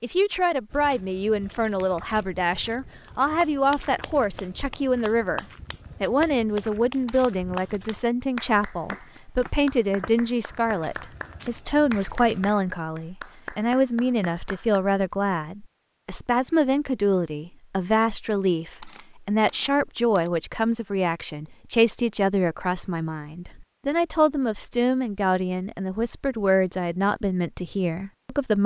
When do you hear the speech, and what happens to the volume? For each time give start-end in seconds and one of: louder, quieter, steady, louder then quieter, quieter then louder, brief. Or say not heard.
0.0-28.6 steady.